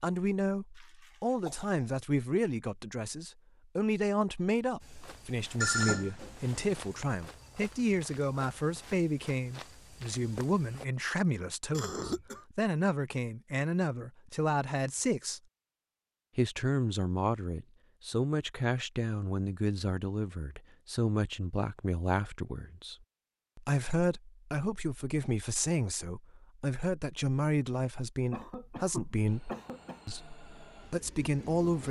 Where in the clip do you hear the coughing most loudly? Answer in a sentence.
The loudest moment of the coughing is at 12 seconds.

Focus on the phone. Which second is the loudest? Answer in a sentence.
The volume of the phone peaks at 6 seconds.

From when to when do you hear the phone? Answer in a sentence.
You can hear the phone from 5.6 to 7.1 s.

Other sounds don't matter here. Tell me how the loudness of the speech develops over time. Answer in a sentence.
The volume of the speech stays about the same.